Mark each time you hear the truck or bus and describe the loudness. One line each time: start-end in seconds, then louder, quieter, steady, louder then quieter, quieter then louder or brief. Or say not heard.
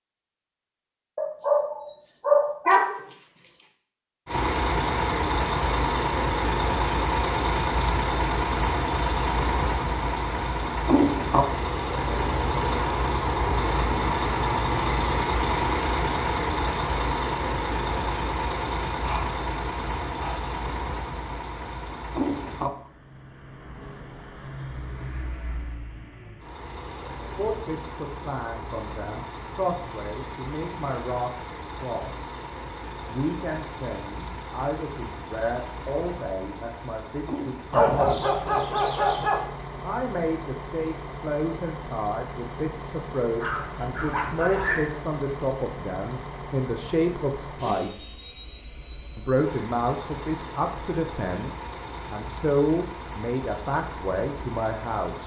4.2-55.2 quieter.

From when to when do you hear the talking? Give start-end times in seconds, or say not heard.
27.4-32.2, 33.0-38.2, 39.8-48.2, 49.1-55.2.